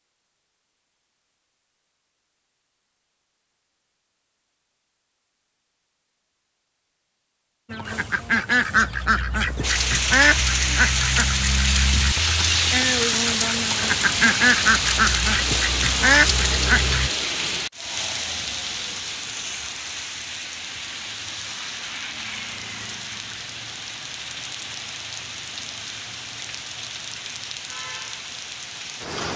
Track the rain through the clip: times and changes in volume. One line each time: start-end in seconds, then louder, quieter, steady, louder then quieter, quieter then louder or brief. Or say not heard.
9.6-29.3 quieter.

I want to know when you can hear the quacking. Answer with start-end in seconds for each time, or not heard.
7.7-17.1.